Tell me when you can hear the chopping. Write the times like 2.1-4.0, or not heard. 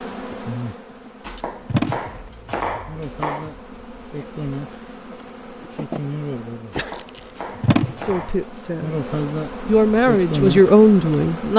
1.2-3.6, 6.7-8.4.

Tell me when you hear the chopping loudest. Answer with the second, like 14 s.
3 s.